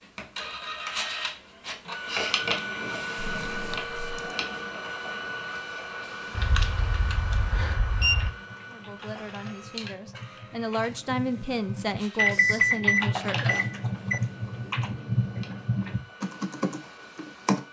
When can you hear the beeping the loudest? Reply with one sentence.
The loudest moment of the beeping is at 13 seconds.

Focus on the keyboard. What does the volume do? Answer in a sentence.
The loudness of the keyboard goes down, then up.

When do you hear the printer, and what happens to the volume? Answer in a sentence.
The printer can be heard from 0.0 to 17.6 s, getting quieter.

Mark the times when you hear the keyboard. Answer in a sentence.
You can hear the keyboard from 6.0 to 17.6 s.